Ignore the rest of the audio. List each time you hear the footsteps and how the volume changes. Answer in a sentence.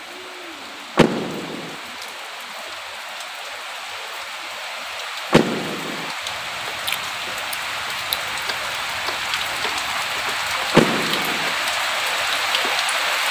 The footsteps can't be heard in this clip.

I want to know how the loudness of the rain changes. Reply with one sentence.
The volume of the rain goes up.